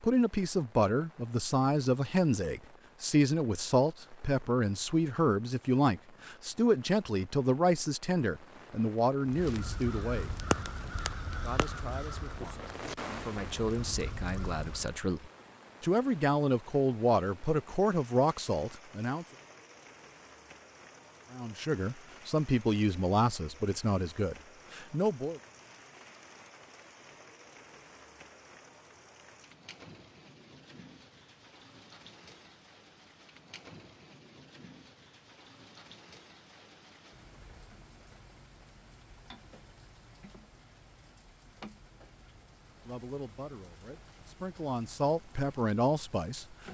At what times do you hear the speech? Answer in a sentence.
You can hear the speech from 0.0 to 10.3 s, from 11.4 to 19.2 s, from 21.3 to 25.4 s and from 42.9 to 46.6 s.